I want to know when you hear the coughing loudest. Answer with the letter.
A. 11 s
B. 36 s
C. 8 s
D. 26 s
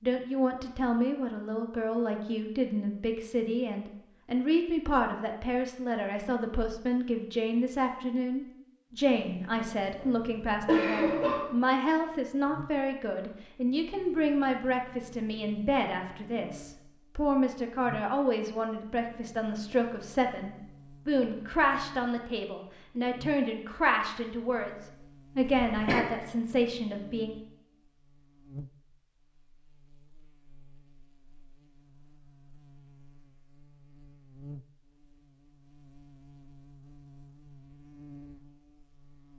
A.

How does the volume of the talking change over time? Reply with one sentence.
The volume of the talking stays about the same.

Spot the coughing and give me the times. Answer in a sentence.
You can hear the coughing from 9.9 to 11.4 s and from 25.4 to 26.1 s.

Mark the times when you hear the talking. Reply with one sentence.
The talking can be heard from 0.0 to 27.4 s.